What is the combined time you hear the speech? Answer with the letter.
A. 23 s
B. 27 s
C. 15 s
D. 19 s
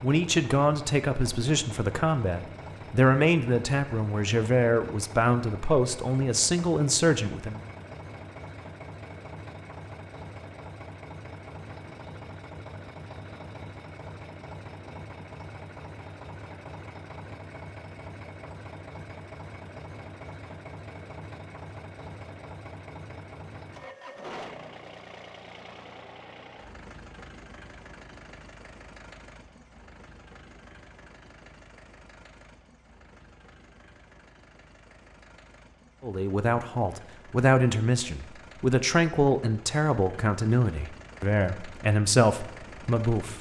C.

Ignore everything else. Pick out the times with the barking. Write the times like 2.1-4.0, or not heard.
not heard.